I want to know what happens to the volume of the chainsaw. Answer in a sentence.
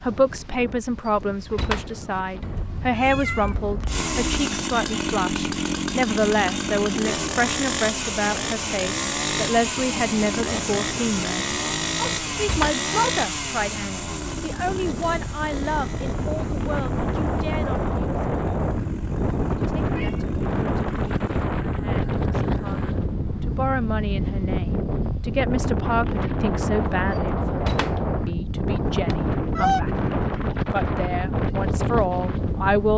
The loudness of the chainsaw goes down.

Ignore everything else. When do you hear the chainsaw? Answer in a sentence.
The chainsaw can be heard from 3.9 to 23.0 s.